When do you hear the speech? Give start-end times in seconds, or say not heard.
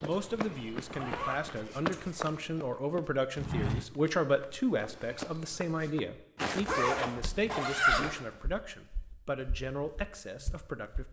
0.0-11.0.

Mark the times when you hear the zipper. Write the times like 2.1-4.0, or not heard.
0.8-2.1, 6.7-8.1.